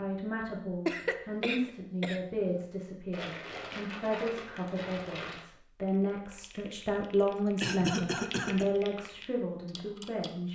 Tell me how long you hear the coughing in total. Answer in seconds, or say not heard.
3 s.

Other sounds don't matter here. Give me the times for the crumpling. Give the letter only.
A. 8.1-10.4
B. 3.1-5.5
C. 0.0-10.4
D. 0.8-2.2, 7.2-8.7
B.